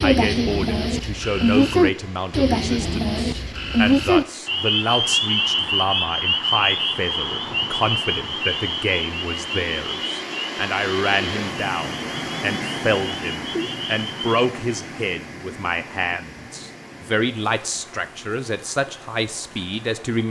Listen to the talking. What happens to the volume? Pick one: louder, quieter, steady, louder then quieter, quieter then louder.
steady.